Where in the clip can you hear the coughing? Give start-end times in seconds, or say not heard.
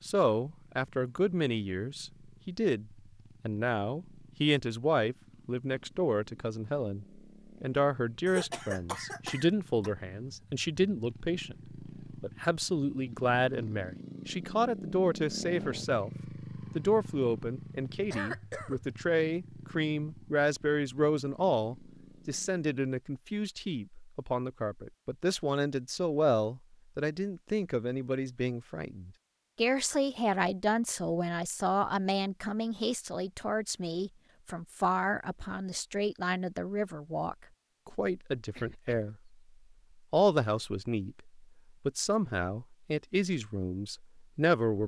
8.2-9.9, 18.1-18.8, 38.4-39.1.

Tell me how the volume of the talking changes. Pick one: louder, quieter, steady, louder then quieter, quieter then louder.
steady.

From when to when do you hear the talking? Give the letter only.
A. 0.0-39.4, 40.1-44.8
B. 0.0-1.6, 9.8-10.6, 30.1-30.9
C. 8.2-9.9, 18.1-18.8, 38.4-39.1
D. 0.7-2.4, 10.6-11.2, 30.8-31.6
A.